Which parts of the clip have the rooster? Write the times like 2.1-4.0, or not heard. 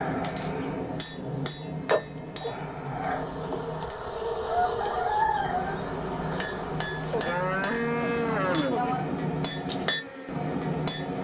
4.5-5.8.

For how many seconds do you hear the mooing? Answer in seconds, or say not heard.
4 s.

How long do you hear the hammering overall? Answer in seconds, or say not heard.
10 s.